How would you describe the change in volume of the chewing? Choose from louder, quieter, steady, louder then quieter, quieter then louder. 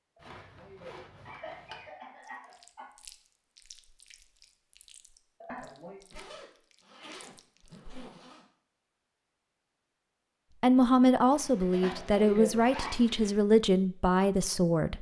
quieter.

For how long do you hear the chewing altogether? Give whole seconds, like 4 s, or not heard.
6 s.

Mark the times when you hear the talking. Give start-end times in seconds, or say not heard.
10.6-14.9.